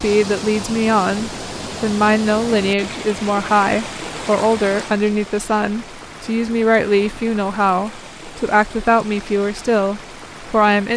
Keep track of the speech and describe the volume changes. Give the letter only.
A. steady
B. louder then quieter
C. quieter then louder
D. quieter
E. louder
A.